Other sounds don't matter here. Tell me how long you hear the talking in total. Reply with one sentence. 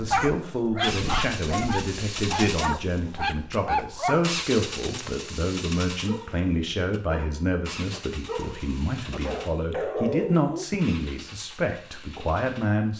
The talking can be heard for 13 seconds in total.